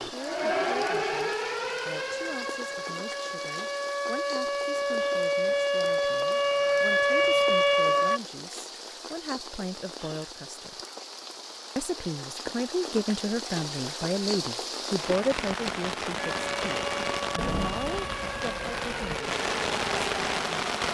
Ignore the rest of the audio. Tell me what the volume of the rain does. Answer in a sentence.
The volume of the rain goes up.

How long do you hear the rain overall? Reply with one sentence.
The rain can be heard for 21 seconds in total.